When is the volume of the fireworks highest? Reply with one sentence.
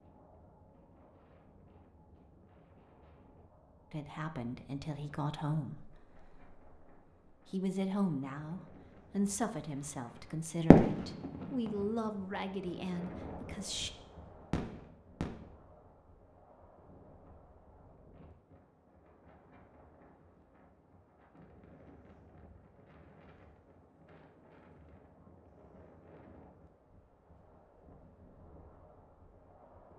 The volume of the fireworks peaks at 11 seconds.